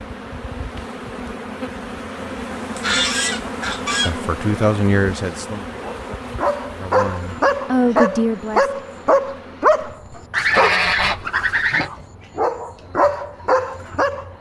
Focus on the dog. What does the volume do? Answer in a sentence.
The loudness of the dog goes down, then up.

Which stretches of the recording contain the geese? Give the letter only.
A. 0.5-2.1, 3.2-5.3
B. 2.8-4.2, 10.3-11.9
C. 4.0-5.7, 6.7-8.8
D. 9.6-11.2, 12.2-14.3
B.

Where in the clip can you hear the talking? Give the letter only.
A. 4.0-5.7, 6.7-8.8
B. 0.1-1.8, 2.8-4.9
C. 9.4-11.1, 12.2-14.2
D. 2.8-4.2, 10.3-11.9
A.